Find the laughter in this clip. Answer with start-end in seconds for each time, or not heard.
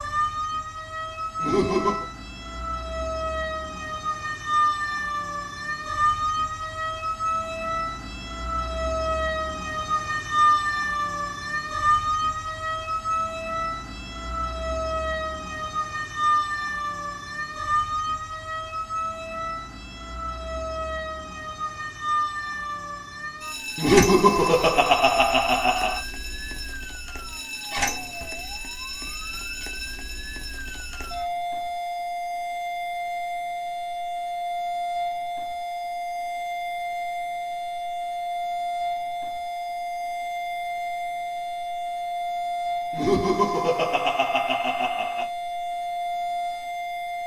1.4-2.0, 23.8-26.0, 42.9-45.2.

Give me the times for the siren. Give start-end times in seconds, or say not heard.
0.0-47.2.